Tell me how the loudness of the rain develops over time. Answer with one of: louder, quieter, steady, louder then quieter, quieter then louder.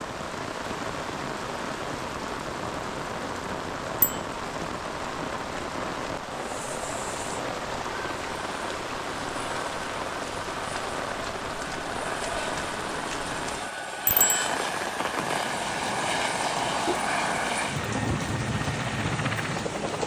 steady.